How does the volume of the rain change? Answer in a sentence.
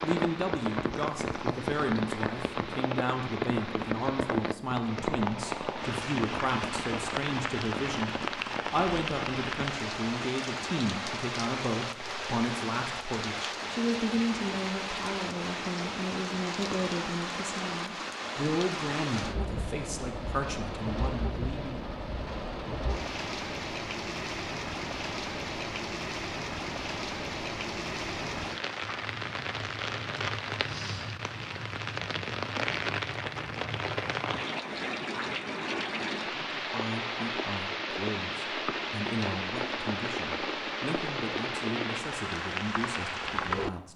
The volume of the rain stays about the same.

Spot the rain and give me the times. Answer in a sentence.
You can hear the rain from 0.0 to 43.7 s.